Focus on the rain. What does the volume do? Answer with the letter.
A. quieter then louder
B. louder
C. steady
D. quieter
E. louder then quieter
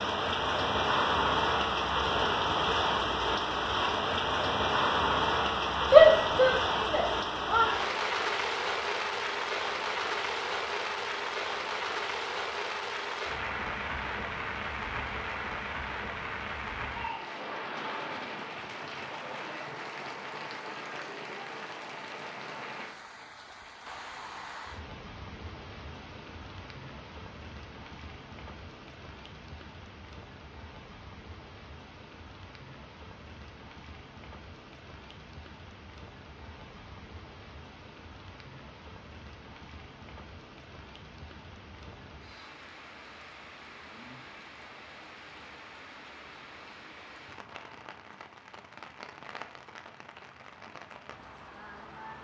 D.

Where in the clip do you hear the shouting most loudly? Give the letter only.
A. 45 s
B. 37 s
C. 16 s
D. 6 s
D.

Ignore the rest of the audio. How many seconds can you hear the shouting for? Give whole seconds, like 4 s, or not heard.
2 s.